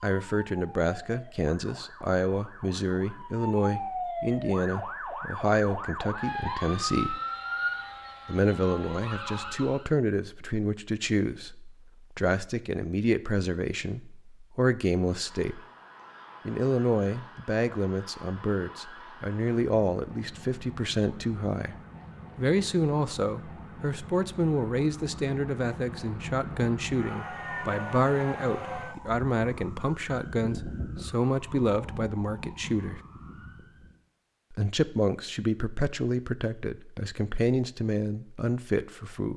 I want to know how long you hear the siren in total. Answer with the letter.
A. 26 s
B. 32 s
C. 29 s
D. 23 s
C.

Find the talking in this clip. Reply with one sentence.
You can hear the talking from 0.0 to 7.2 s, from 8.2 to 15.6 s, from 16.4 to 21.8 s, from 22.4 to 33.0 s and from 34.5 to 39.3 s.